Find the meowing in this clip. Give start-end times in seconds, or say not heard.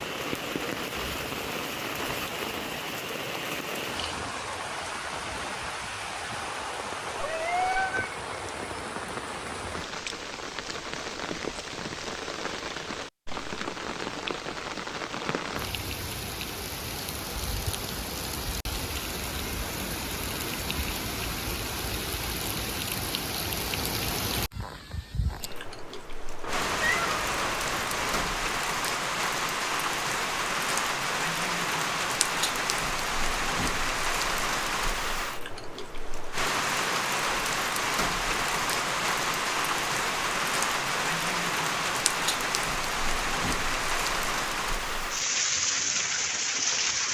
7.2-8.0, 26.4-28.4.